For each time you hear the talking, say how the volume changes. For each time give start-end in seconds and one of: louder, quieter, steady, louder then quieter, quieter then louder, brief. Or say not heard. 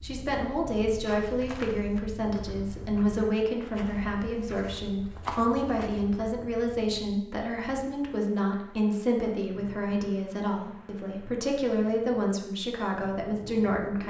0.0-14.0 steady.